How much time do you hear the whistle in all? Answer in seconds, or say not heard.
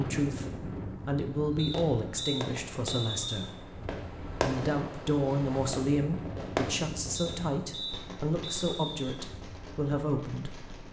4 s.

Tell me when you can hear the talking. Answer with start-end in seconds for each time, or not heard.
0.0-10.8.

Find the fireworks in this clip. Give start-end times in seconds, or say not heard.
1.6-10.8.